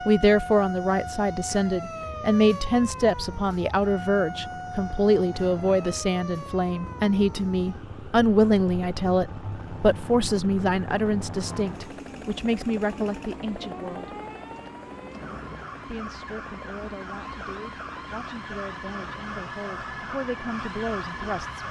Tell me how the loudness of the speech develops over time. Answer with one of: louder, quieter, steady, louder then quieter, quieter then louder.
quieter.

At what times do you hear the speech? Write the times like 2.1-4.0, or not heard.
0.1-14.2, 15.8-21.6.